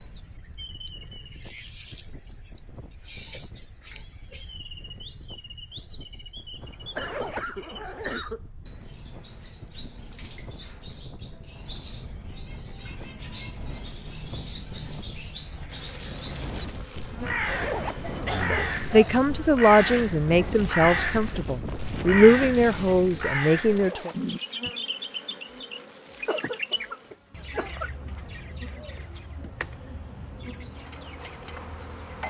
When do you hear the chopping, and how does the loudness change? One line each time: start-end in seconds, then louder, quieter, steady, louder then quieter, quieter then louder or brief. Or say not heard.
not heard.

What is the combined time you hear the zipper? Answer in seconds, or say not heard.
3 s.